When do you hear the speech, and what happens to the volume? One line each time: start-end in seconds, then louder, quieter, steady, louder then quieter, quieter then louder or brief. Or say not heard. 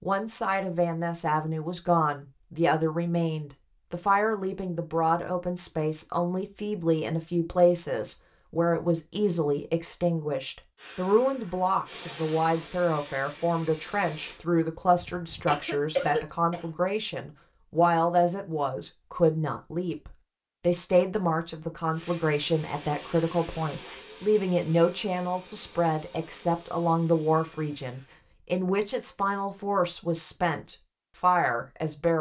0.0-32.1 steady.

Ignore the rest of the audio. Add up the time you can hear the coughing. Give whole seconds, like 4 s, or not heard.
2 s.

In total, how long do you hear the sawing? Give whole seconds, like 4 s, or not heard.
not heard.